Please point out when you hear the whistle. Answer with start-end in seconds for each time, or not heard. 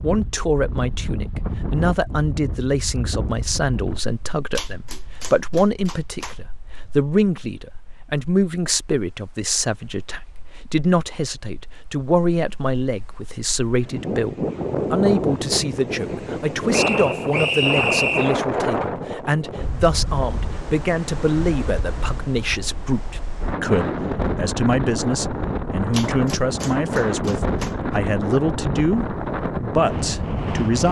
16.7-18.4.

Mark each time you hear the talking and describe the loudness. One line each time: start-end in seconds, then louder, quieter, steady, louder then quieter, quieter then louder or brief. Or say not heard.
0.0-30.8 steady.